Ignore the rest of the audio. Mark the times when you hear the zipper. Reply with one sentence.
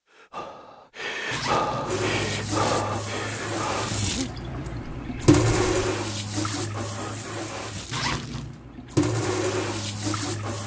You can hear the zipper from 1.3 to 2.8 s and from 7.9 to 8.6 s.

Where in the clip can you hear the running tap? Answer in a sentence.
The running tap can be heard from 1.9 to 10.6 s.